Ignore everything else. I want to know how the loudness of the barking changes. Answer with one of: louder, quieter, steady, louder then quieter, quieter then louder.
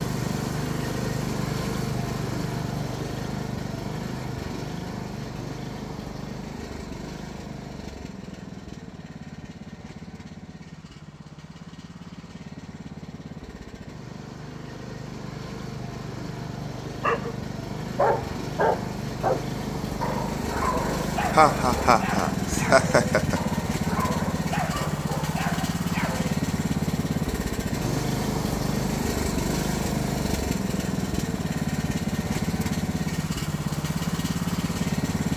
quieter.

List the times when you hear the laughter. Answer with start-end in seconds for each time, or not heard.
21.3-23.4.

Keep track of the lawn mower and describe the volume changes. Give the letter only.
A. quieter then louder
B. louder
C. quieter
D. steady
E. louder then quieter
A.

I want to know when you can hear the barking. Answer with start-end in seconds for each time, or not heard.
17.0-26.4.